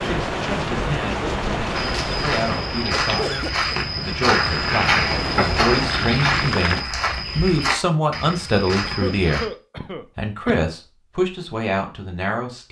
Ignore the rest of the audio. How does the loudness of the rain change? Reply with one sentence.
The volume of the rain goes down, then up.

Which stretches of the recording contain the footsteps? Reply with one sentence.
You can hear the footsteps from 1.7 to 9.5 s.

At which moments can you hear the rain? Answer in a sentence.
You can hear the rain from 0.0 to 6.8 s.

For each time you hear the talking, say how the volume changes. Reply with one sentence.
The talking can be heard from 0.0 to 9.5 s, getting louder; and briefly from 10.2 to 12.6 s.